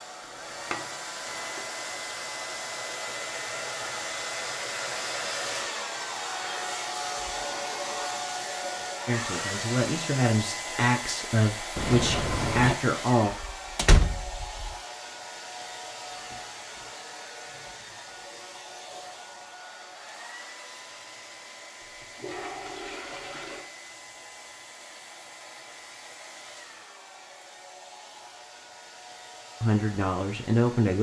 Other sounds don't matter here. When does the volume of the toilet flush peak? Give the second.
12 s.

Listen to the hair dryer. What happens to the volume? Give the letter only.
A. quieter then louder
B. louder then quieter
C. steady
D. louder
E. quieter
E.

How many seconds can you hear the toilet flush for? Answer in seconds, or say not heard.
4 s.